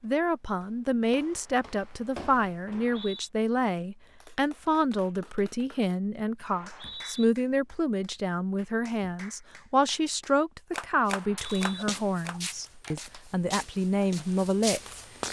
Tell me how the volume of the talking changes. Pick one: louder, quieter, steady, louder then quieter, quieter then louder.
steady.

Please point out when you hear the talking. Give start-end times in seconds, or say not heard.
0.0-15.0.